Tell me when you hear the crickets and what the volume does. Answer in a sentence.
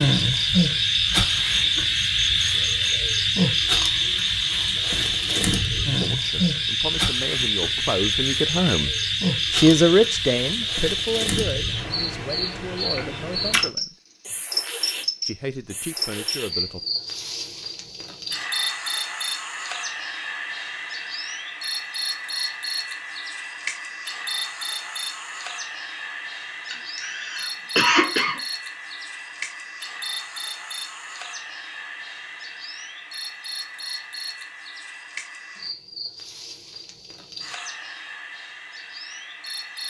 You can hear the crickets from 0.0 to 39.8 s, getting quieter.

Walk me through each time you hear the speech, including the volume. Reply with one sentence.
The speech can be heard from 5.8 to 13.9 s, getting louder then quieter; and briefly from 15.2 to 16.8 s.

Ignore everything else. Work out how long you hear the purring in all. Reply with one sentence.
The purring can't be heard in this clip.